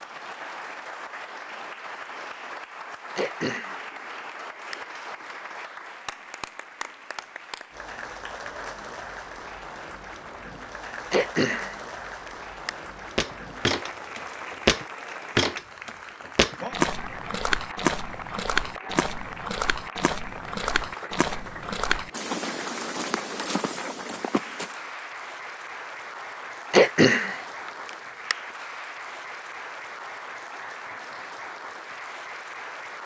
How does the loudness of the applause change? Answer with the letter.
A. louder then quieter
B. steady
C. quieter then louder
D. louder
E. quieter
B.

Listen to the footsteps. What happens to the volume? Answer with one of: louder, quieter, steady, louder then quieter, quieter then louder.
quieter.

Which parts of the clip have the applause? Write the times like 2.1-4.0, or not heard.
0.0-33.0.